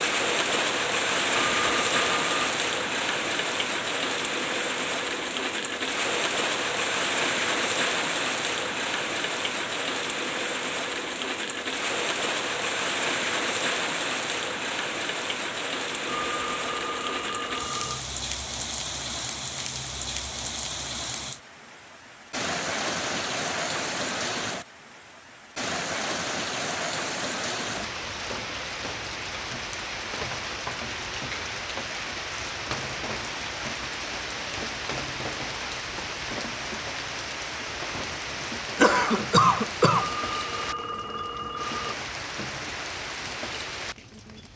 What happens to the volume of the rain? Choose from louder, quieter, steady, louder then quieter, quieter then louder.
quieter.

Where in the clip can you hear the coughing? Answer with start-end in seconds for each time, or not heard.
38.8-40.1.